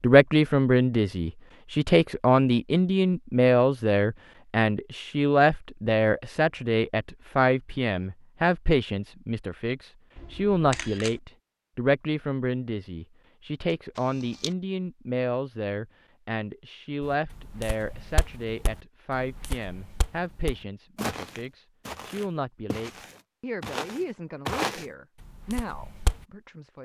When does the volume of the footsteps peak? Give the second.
25 s.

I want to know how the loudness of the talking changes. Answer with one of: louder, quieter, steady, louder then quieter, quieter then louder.
quieter.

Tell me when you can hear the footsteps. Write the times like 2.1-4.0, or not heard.
17.0-26.2.